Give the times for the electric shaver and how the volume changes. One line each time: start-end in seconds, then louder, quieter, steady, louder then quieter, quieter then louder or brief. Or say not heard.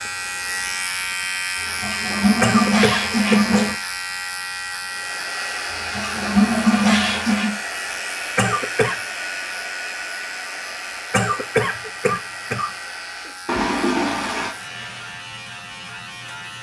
0.0-16.5 quieter.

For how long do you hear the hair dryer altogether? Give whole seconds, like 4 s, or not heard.
10 s.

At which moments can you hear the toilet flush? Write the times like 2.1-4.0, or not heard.
1.6-3.8, 5.7-7.5, 13.4-14.6.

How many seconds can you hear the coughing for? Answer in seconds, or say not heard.
3 s.